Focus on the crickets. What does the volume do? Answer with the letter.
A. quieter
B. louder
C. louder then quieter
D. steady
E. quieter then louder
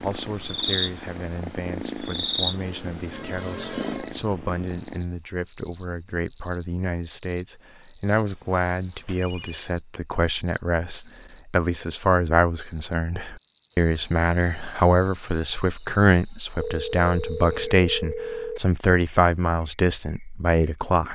A.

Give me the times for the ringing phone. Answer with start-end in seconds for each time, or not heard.
3.1-4.2, 8.2-9.7, 16.6-18.6.